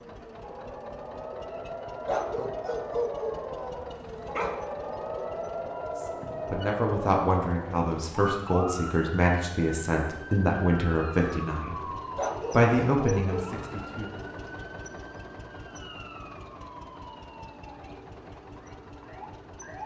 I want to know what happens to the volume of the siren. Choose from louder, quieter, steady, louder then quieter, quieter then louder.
quieter.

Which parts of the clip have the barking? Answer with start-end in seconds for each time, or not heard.
2.0-4.6, 12.2-13.6.